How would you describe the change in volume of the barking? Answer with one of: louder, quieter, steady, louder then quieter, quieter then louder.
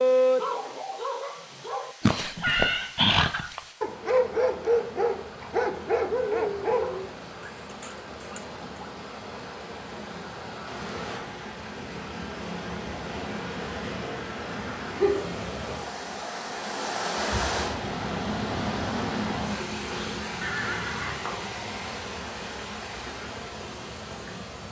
louder then quieter.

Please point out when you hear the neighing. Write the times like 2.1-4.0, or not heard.
2.1-2.9, 20.4-21.2.